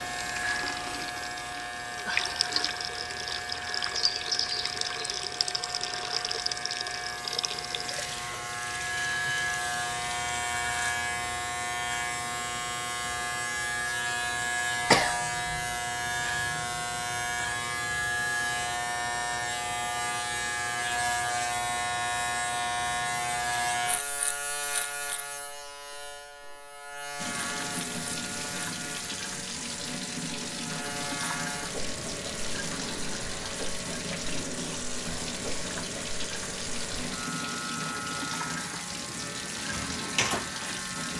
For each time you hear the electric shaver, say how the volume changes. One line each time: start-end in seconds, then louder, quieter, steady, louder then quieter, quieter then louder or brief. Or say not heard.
0.0-41.1 louder then quieter.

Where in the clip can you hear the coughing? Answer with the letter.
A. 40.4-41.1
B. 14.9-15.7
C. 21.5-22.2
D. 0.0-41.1
B.